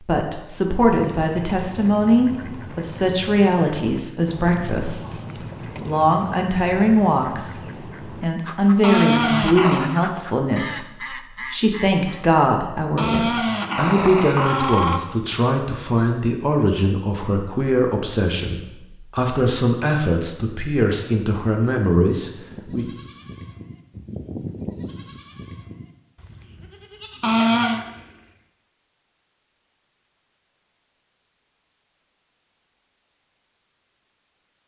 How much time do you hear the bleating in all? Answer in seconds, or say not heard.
6 s.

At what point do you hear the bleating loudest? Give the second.
25 s.